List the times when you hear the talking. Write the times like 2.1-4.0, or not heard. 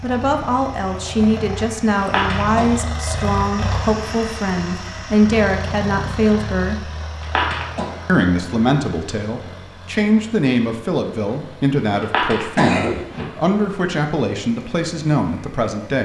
0.0-6.9, 8.1-16.0.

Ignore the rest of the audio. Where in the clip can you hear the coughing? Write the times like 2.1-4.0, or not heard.
2.0-2.7, 7.2-7.8, 12.0-13.2.